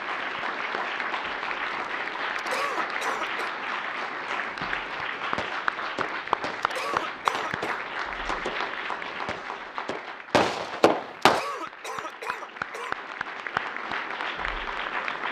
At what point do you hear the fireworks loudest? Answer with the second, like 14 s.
11 s.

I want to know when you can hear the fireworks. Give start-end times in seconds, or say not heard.
5.2-11.4.